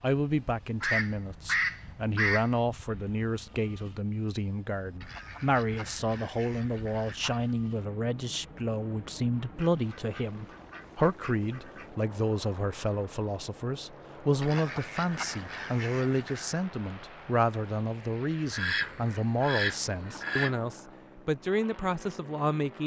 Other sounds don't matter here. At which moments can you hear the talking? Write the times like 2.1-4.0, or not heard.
0.0-22.8.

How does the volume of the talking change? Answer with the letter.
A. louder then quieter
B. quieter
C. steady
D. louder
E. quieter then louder
C.